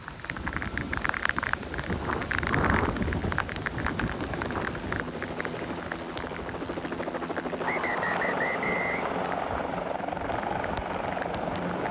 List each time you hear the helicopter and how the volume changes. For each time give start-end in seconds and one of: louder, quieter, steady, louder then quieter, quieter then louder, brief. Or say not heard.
0.0-11.8 louder.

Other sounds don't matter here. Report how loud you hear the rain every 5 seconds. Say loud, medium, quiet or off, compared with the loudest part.
loud, medium, medium.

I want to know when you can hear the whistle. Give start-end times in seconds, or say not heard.
7.6-9.6.